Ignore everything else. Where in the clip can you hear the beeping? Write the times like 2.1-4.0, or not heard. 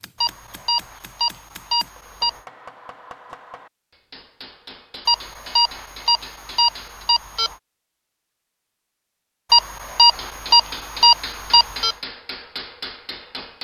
0.2-2.4, 5.0-7.5, 9.5-11.9.